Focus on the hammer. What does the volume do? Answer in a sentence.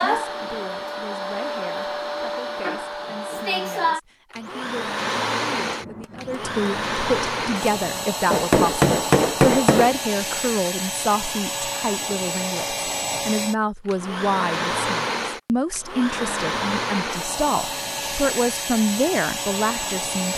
The loudness of the hammer goes up.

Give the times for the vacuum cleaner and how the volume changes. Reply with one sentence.
The vacuum cleaner can be heard from 0.0 to 20.3 s, at a steady volume.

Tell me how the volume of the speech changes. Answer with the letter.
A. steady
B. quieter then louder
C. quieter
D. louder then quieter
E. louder
E.